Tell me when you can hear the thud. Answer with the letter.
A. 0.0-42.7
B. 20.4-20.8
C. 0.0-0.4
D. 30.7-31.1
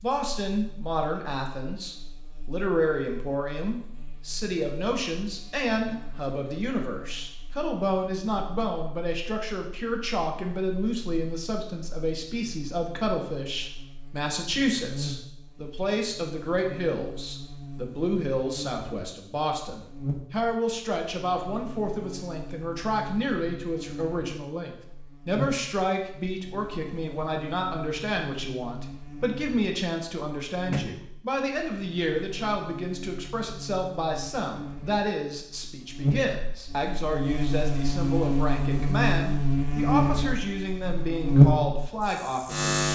D.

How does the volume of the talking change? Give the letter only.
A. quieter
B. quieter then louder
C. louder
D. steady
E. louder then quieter
D.